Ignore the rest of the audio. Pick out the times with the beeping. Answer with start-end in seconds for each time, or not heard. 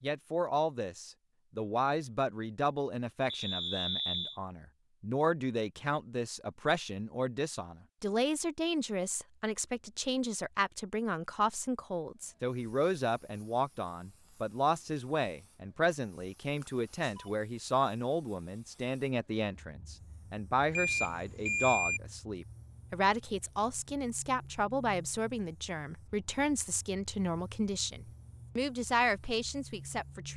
3.3-4.3, 16.6-17.3, 20.7-22.0.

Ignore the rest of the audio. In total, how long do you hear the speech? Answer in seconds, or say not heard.
30 s.